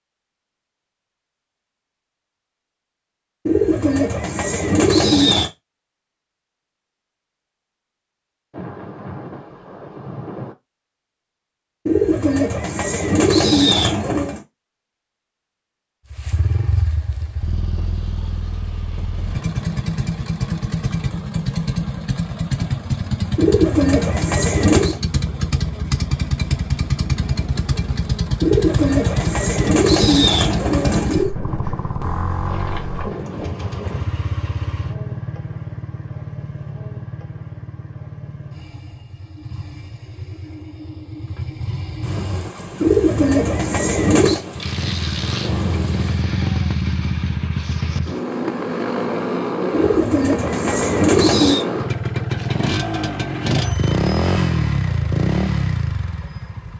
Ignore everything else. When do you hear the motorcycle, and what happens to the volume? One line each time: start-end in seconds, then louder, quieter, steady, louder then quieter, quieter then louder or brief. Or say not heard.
16.1-56.7 quieter then louder.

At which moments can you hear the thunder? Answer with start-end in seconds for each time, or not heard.
8.5-10.6, 31.4-34.1, 42.0-46.2.